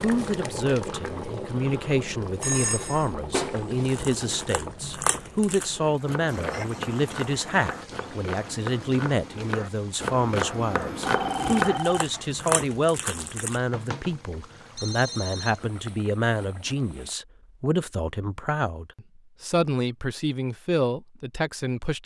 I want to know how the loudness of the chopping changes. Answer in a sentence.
The volume of the chopping goes up.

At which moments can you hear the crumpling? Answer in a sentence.
You can hear the crumpling from 3.8 to 5.7 s and from 11.2 to 13.6 s.